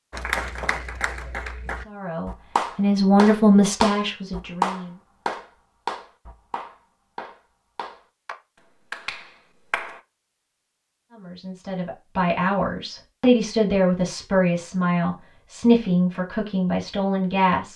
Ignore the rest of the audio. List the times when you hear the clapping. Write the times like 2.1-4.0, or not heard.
0.1-10.0.